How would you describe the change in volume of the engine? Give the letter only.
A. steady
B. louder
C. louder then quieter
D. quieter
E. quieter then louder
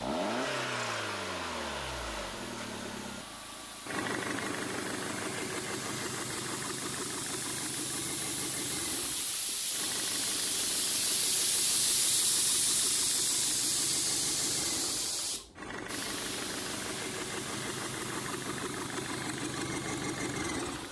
E.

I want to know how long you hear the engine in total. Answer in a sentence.
You can hear the engine for 21 seconds altogether.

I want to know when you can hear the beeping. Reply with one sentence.
The beeping can't be heard in this clip.